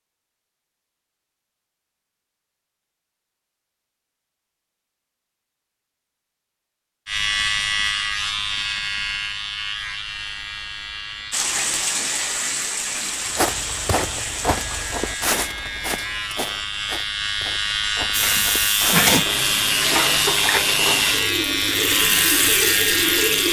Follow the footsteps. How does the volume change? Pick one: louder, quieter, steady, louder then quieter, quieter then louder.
quieter.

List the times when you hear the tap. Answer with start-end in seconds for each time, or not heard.
11.3-15.4, 18.1-23.4.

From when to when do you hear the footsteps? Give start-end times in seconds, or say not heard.
13.3-19.1.